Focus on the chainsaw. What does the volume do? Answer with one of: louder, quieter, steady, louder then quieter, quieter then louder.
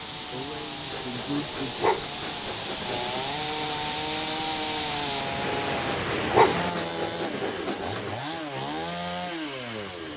louder.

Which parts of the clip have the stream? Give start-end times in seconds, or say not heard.
0.0-6.8.